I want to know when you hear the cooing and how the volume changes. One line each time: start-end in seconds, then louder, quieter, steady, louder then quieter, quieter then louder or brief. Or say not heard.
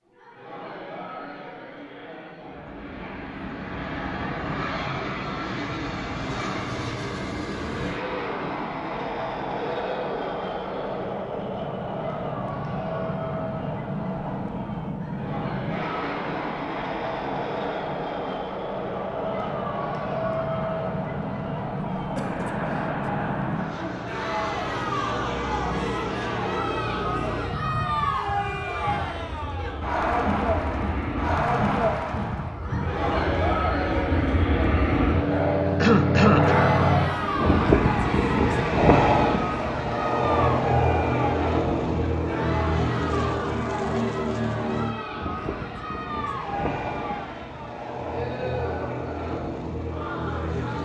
not heard.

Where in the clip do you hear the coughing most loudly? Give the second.
36 s.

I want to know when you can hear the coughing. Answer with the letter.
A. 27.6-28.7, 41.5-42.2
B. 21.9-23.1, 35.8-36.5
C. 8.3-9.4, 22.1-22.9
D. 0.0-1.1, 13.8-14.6
B.